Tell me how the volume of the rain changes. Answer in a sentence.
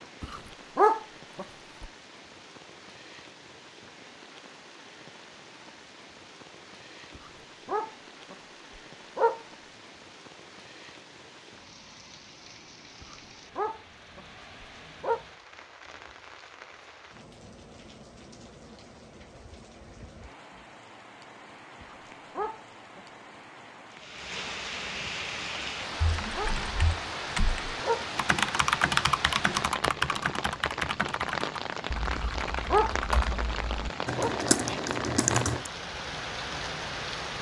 The volume of the rain goes up.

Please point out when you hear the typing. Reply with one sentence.
You can hear the typing from 25.9 to 35.7 s.